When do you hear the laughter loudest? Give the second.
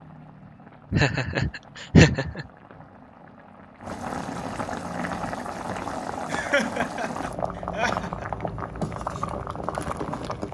2 s.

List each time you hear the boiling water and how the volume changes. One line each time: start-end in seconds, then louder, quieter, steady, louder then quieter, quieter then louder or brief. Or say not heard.
0.0-10.4 louder.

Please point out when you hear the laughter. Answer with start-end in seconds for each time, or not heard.
0.9-2.5, 6.2-8.2.